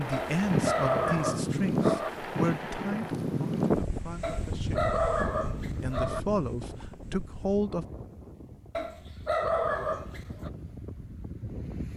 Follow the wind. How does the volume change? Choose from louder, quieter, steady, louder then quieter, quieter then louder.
quieter.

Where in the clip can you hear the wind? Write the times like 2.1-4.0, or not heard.
0.0-11.9.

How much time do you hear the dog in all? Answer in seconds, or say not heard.
6 s.